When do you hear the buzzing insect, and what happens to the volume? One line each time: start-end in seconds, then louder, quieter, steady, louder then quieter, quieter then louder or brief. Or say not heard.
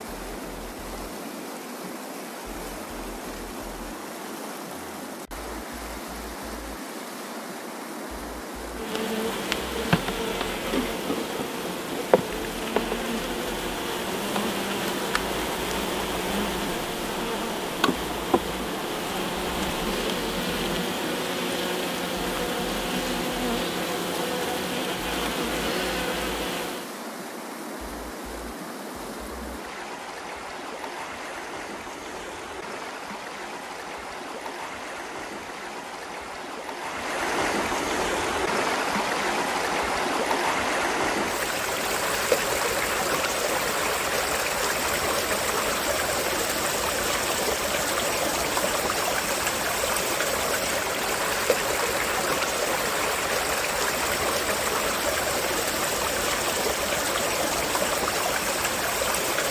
8.8-26.9 steady.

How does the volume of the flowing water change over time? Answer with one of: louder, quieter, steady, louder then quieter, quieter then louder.
louder.